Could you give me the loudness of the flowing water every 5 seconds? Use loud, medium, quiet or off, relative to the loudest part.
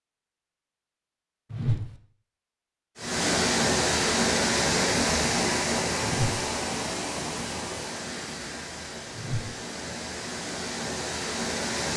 loud, medium, medium.